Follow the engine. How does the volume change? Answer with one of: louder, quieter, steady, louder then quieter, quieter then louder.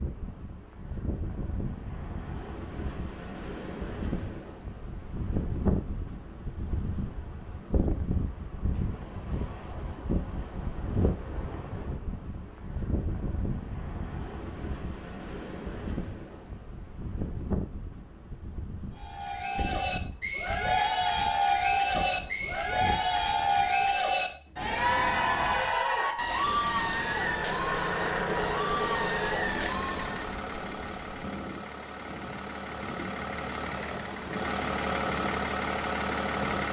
quieter then louder.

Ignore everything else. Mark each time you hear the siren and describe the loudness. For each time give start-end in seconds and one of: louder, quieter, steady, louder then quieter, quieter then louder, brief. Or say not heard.
not heard.